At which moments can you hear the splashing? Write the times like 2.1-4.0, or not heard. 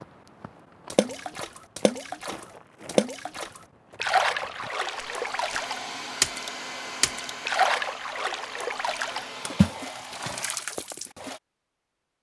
0.9-11.4.